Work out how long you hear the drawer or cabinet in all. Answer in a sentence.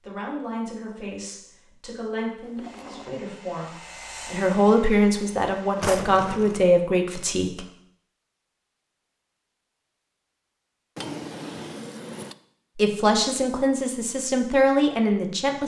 The drawer or cabinet can be heard for 3 seconds in total.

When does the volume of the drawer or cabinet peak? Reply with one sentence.
The loudest moment of the drawer or cabinet is at 6 seconds.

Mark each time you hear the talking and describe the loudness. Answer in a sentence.
The talking can be heard from 0.1 to 7.7 s, getting louder; and briefly from 12.8 to 15.6 s.